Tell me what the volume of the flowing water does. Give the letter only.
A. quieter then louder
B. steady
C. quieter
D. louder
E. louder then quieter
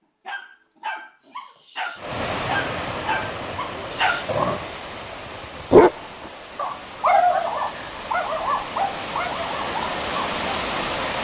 A.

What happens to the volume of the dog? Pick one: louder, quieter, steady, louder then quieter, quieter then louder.
louder then quieter.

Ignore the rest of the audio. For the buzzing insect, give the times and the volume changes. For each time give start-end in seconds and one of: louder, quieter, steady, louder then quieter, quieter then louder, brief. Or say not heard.
not heard.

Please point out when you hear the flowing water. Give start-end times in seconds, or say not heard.
1.9-11.1.